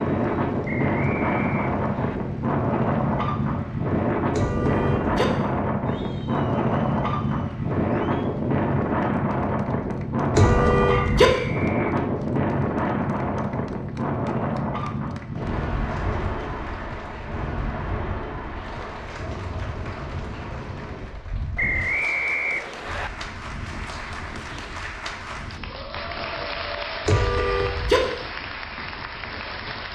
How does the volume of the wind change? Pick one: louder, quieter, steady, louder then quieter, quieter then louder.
quieter.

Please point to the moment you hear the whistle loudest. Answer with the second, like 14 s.
22 s.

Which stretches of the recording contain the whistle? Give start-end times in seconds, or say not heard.
0.7-2.2, 10.9-11.9, 21.6-23.1.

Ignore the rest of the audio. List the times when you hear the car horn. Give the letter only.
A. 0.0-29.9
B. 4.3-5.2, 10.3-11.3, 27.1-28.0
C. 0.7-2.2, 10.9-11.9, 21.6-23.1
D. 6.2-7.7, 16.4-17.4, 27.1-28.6
B.